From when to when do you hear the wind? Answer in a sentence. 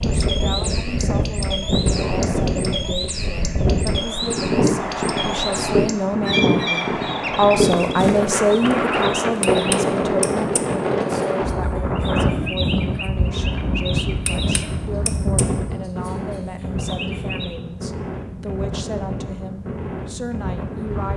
The wind can be heard from 0.0 to 21.1 s.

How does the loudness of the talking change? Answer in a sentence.
The loudness of the talking goes up, then down.